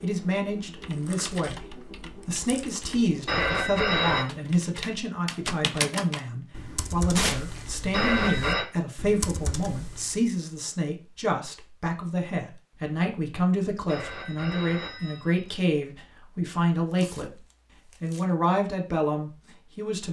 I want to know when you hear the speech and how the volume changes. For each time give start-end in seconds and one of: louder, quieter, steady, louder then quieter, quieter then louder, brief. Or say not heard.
0.0-17.4 steady
18.0-20.0 brief.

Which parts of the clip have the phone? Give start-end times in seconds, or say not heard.
3.2-4.2, 7.9-8.7, 13.8-15.7.